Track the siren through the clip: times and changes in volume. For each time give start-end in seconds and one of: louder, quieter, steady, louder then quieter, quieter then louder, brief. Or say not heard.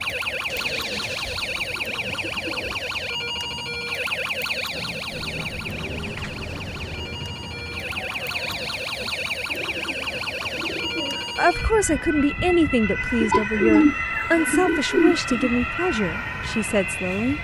0.0-17.3 steady.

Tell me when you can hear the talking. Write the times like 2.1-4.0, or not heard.
11.3-17.3.